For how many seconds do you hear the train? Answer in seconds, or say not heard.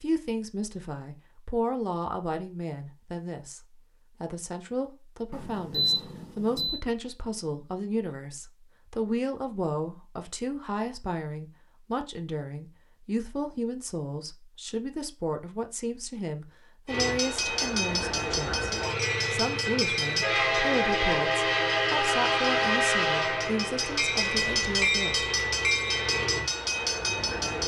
11 s.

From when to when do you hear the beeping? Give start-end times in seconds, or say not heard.
5.3-6.8.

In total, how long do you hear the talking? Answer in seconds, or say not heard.
24 s.